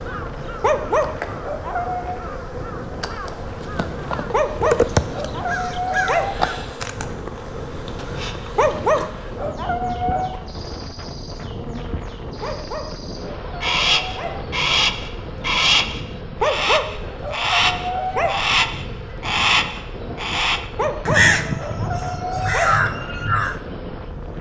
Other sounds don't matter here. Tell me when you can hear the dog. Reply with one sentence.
The dog can be heard from 0.6 to 2.2 s, from 4.3 to 6.3 s, from 8.6 to 10.3 s, from 12.4 to 14.4 s, from 16.4 to 18.4 s and from 20.8 to 22.8 s.